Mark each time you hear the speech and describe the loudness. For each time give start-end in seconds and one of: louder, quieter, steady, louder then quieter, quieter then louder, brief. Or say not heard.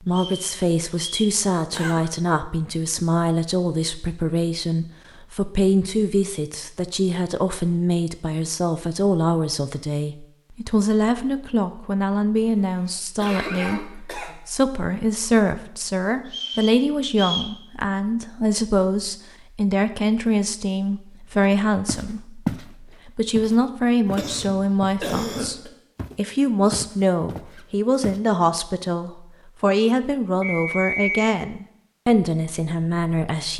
0.1-25.6 steady
26.1-33.5 steady.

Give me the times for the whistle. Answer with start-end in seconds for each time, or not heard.
0.1-1.4, 16.3-17.6, 30.4-31.4.